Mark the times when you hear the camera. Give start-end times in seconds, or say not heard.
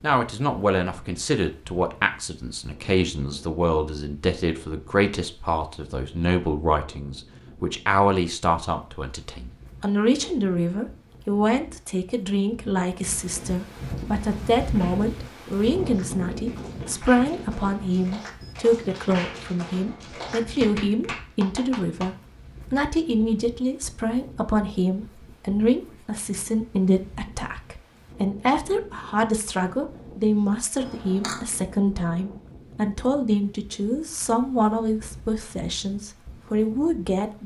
30.8-31.4.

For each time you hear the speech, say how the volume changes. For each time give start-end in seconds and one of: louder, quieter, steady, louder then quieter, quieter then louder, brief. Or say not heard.
0.0-37.4 steady.